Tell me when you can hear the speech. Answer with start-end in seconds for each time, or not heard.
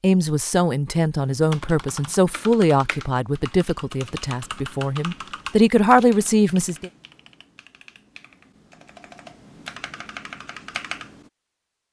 0.0-6.9.